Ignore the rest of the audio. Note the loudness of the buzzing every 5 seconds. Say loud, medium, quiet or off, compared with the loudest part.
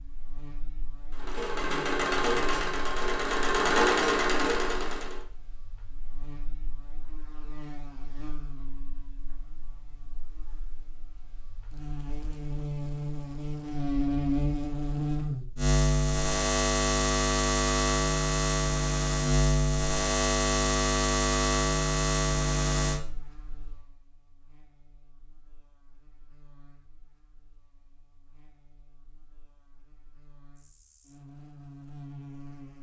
quiet, quiet, medium, loud, loud, quiet, quiet.